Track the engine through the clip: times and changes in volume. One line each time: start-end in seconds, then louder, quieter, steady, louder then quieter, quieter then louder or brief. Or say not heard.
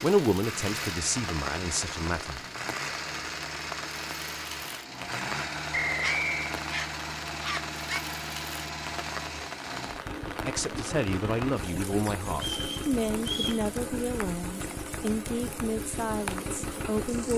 0.0-17.3 steady.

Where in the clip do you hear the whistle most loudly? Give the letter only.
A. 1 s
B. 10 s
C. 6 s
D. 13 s
C.